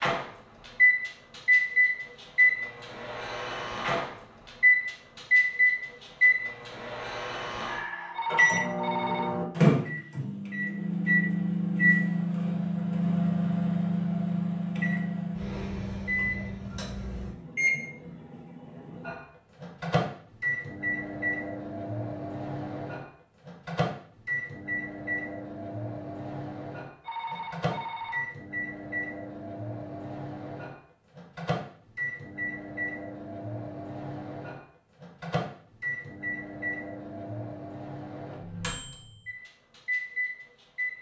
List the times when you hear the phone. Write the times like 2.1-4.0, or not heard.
8.2-9.4, 27.1-28.3.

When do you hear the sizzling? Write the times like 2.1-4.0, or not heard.
not heard.